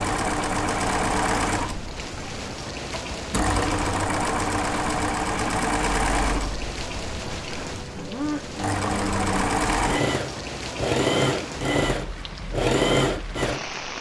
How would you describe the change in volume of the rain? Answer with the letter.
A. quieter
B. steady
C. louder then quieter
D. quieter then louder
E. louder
B.